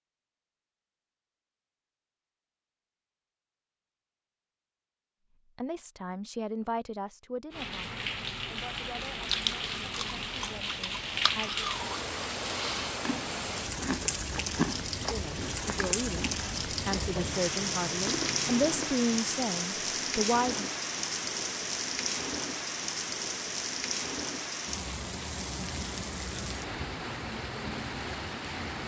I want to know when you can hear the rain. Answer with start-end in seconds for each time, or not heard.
7.5-28.8.